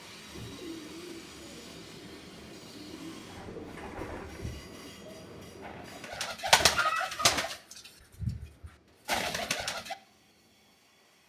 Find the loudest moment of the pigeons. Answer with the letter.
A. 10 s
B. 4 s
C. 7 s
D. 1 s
C.